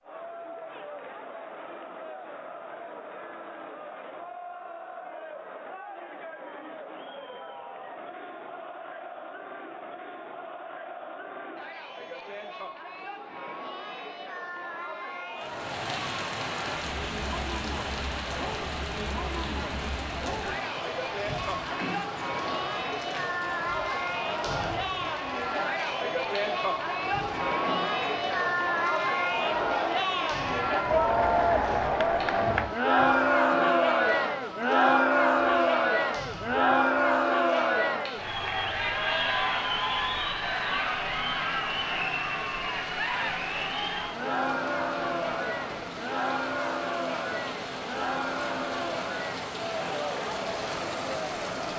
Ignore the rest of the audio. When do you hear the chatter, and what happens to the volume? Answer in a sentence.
You can hear the chatter from 0.0 to 51.7 s, getting louder then quieter.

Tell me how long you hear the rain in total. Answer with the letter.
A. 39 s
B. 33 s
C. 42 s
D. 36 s
D.